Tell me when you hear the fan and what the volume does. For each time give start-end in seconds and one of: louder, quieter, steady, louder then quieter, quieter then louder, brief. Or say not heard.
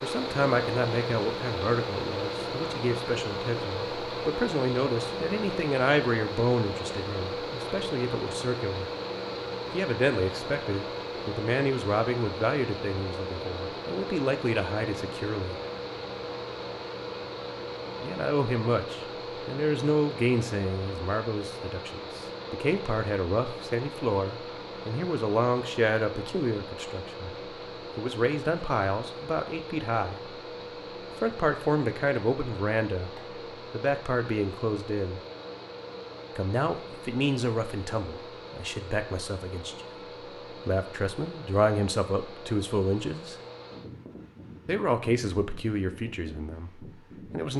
0.0-47.5 quieter.